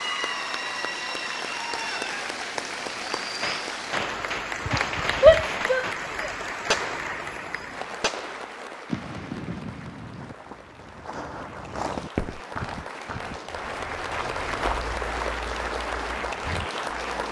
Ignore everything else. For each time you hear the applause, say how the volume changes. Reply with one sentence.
The applause can be heard from 0.0 to 17.2 s, getting quieter then louder.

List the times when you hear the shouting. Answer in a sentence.
The shouting can be heard from 5.2 to 6.3 s.